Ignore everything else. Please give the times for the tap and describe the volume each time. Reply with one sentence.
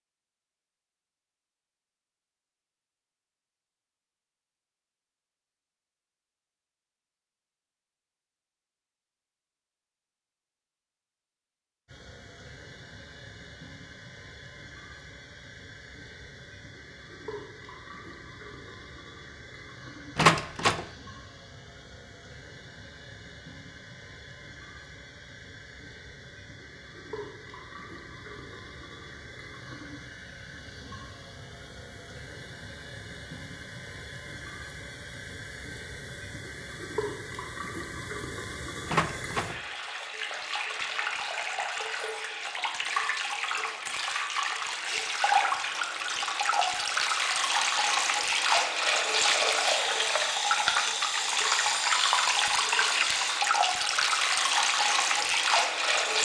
The tap can be heard from 11.8 to 56.2 s, getting louder.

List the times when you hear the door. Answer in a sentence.
You can hear the door from 20.1 to 20.9 s and from 38.9 to 39.5 s.